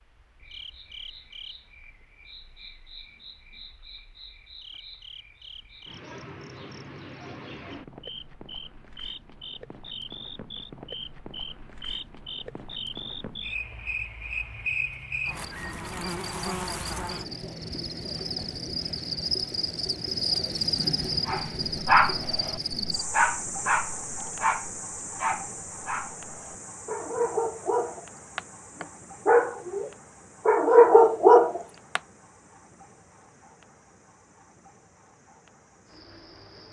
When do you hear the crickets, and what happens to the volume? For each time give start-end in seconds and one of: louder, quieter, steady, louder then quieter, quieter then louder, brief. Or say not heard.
0.0-36.6 louder then quieter.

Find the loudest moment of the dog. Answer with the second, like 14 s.
31 s.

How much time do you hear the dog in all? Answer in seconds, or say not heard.
11 s.